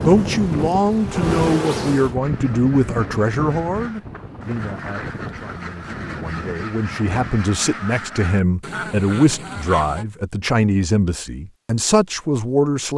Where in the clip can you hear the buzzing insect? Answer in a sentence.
You can hear the buzzing insect from 0.0 to 2.1 s.